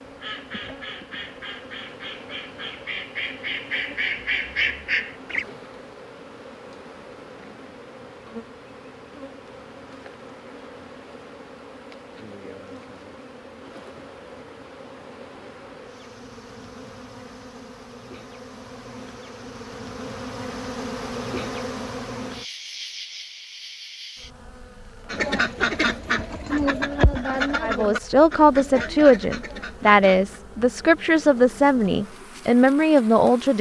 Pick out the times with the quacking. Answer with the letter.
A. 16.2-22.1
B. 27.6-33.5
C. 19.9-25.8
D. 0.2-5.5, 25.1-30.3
D.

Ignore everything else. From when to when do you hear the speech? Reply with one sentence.
The speech can be heard from 27.6 to 33.5 s.